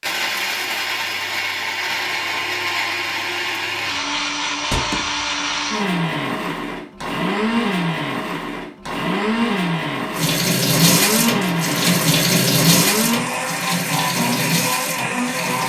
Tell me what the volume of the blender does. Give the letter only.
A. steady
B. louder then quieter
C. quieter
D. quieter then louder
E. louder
A.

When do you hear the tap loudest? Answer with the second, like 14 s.
12 s.